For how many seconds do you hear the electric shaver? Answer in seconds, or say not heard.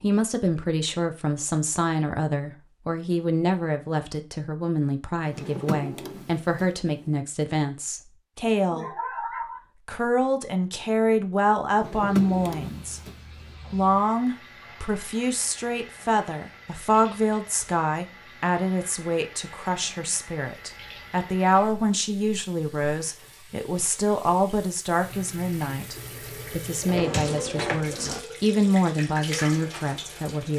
not heard.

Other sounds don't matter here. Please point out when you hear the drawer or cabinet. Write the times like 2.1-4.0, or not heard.
5.2-6.7, 11.7-13.2, 26.9-28.2.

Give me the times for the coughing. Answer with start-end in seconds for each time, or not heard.
8.6-9.6.